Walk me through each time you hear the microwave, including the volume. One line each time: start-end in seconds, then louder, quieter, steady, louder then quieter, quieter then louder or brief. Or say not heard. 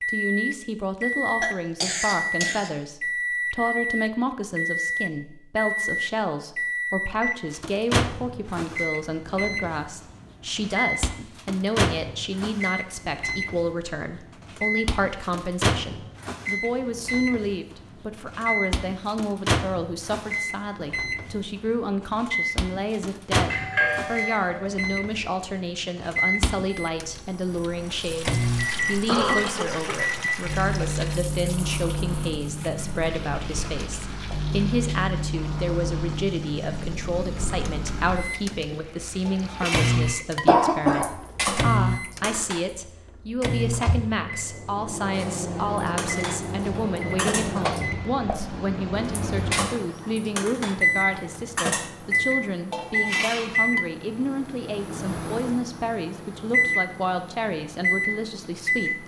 0.0-59.0 steady.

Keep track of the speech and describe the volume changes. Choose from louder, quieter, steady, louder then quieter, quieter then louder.
steady.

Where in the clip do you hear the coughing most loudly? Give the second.
41 s.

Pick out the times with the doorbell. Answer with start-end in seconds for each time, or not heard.
23.5-24.6.